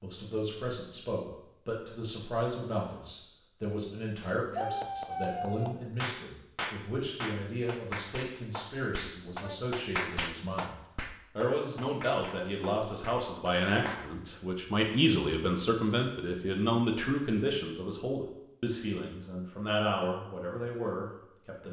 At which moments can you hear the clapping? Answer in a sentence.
The clapping can be heard from 4.5 to 14.1 s.